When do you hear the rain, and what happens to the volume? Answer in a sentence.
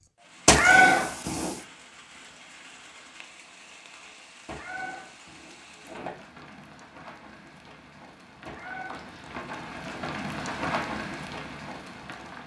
The rain can be heard from 0.0 to 12.4 s, getting louder.